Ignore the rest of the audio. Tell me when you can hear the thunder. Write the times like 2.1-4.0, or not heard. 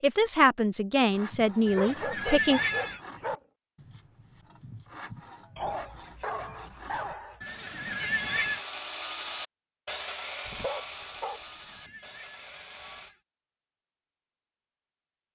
not heard.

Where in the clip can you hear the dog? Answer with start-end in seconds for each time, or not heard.
1.6-3.4, 5.5-7.4, 10.4-11.4.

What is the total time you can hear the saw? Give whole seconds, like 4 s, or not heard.
12 s.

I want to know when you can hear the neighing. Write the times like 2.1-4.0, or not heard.
1.6-3.0, 7.4-8.6, 11.3-13.2.